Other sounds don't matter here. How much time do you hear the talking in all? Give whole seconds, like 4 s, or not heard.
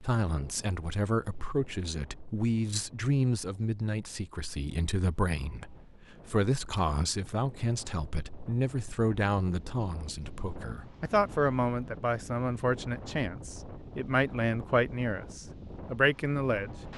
17 s.